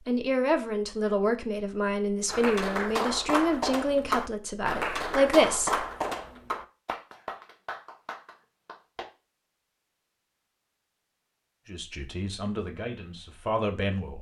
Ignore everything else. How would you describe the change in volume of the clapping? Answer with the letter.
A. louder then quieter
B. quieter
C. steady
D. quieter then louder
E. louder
B.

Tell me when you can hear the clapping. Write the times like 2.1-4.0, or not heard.
2.2-9.1.